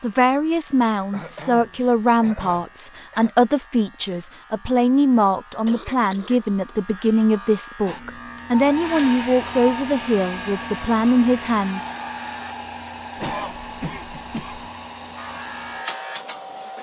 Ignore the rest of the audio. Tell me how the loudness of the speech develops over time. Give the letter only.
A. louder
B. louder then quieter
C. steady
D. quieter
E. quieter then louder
C.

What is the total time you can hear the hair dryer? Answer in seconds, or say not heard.
9 s.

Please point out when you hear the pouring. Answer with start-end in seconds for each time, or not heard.
not heard.